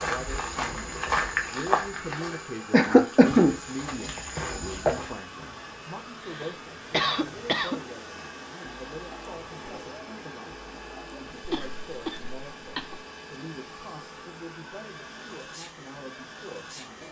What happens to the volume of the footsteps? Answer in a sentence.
The volume of the footsteps goes down, then up.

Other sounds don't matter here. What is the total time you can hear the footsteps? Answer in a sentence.
You can hear the footsteps for 5 seconds altogether.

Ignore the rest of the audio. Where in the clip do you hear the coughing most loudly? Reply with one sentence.
The loudest moment of the coughing is at 3 seconds.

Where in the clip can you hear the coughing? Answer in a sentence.
The coughing can be heard from 2.7 to 3.5 s, from 6.2 to 7.8 s and from 11.4 to 13.0 s.